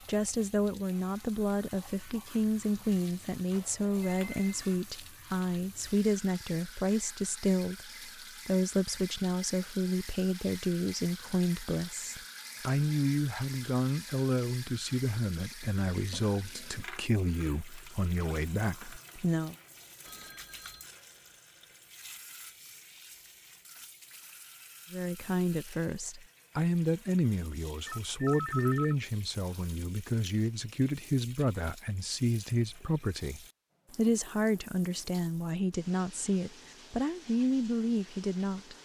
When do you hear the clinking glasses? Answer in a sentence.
The clinking glasses can't be heard in this clip.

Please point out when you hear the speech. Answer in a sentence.
You can hear the speech from 0.1 to 19.6 s and from 24.9 to 38.8 s.